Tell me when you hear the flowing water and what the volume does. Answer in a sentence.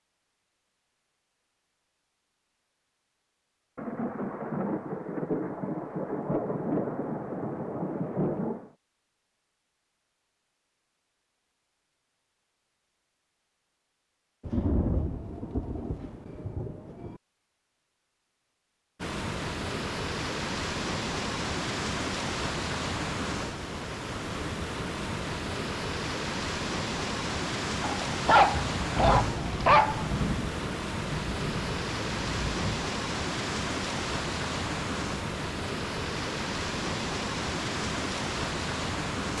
You can hear the flowing water from 18.9 to 39.3 s, at a steady volume.